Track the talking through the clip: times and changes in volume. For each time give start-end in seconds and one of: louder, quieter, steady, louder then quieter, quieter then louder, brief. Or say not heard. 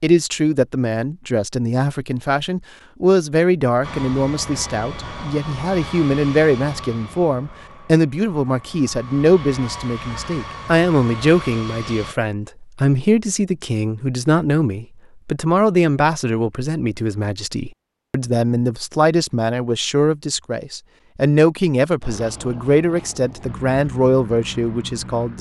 0.0-25.3 steady.